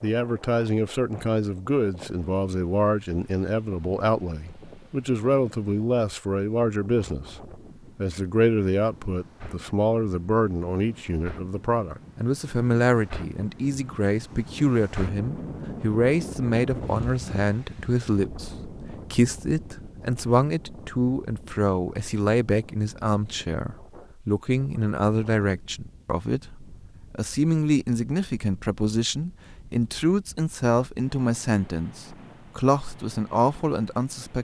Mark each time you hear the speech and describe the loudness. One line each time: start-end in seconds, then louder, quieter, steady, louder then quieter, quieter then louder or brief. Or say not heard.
0.0-34.3 steady.